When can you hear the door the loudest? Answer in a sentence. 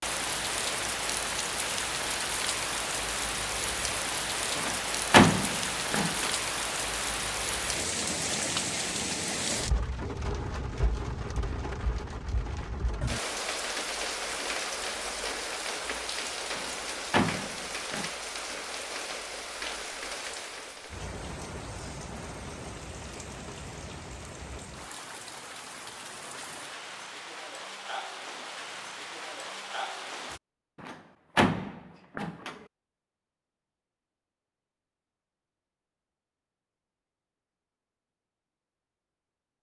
The volume of the door peaks at 5 seconds.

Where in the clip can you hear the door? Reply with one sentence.
You can hear the door from 4.5 to 6.3 s, from 16.6 to 18.1 s and from 30.8 to 32.6 s.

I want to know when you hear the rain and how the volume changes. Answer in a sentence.
You can hear the rain from 0.0 to 30.4 s, getting quieter.